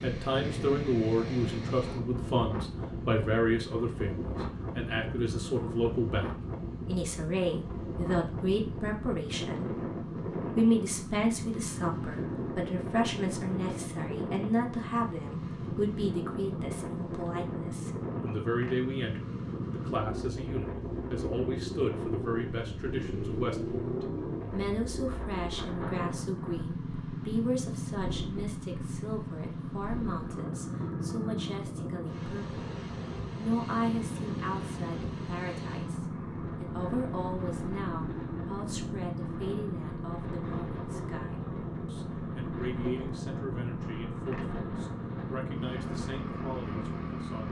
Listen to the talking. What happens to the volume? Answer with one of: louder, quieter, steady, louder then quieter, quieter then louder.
quieter.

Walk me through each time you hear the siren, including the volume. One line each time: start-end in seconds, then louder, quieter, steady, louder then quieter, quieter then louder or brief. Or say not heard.
not heard.